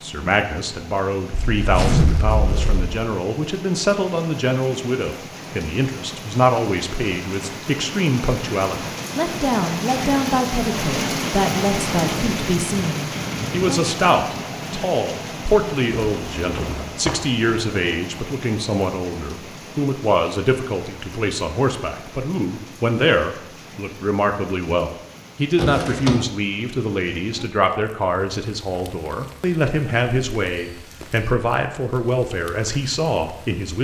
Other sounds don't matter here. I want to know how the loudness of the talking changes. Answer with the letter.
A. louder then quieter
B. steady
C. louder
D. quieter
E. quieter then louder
B.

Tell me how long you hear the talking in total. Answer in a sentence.
The talking can be heard for 34 seconds in total.